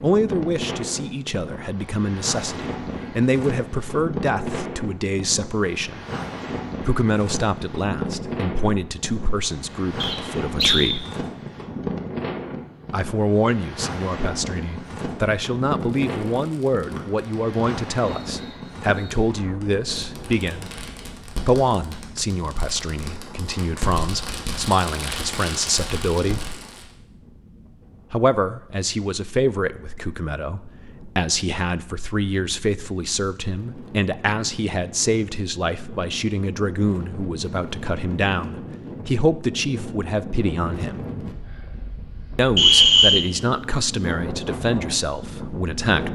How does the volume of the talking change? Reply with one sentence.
The loudness of the talking stays about the same.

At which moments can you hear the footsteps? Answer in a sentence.
You can't hear the footsteps here.